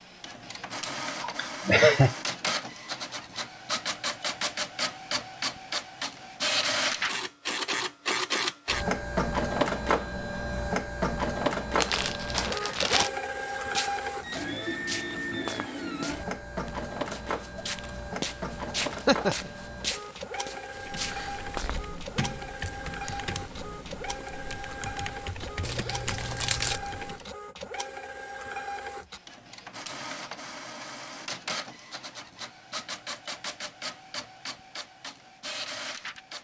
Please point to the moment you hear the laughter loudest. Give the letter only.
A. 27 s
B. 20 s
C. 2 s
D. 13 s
C.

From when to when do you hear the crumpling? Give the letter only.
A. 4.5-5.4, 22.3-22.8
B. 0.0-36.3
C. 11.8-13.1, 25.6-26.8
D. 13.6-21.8
C.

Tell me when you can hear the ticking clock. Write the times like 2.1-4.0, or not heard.
not heard.